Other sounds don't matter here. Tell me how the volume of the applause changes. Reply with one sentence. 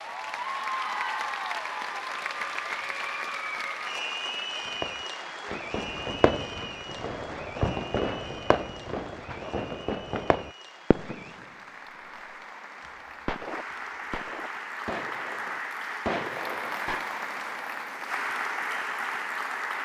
The loudness of the applause goes down, then up.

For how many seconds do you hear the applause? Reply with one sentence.
You can hear the applause for 20 seconds altogether.